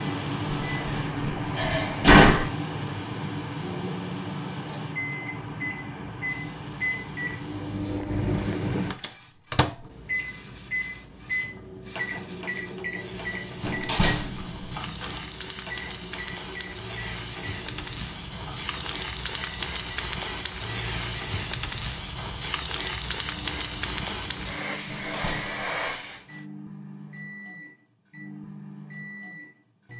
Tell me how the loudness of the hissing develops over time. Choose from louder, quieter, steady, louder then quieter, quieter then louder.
quieter then louder.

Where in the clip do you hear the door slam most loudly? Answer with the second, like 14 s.
2 s.